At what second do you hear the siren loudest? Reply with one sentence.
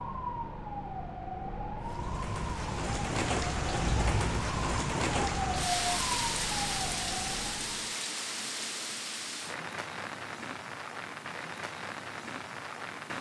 The loudest moment of the siren is at 6 seconds.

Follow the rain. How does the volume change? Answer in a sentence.
The loudness of the rain goes down.